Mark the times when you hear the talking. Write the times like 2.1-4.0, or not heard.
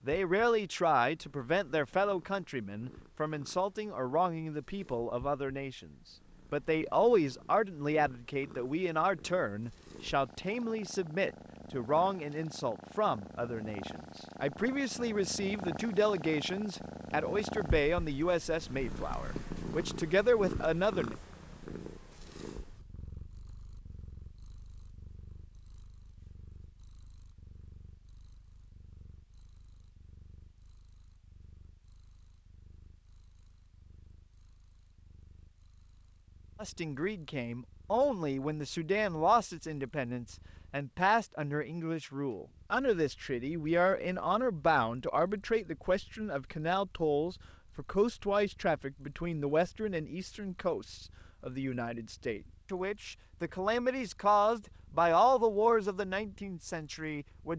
0.1-5.9, 6.5-21.1, 36.6-57.5.